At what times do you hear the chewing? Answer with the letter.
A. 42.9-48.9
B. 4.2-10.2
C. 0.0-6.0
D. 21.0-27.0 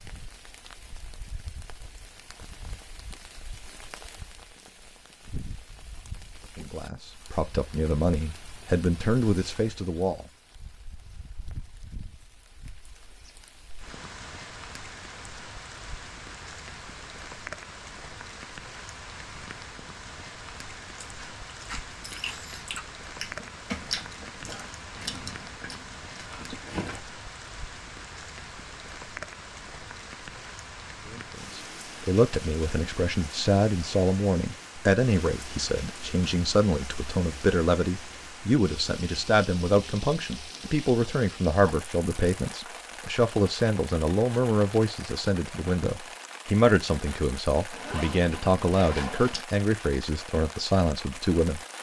D.